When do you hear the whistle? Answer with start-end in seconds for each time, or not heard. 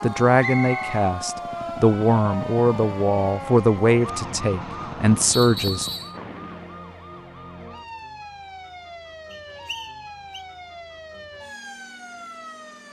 0.4-1.0, 5.3-6.2, 9.3-10.4.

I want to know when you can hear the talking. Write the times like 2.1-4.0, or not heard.
0.0-5.9.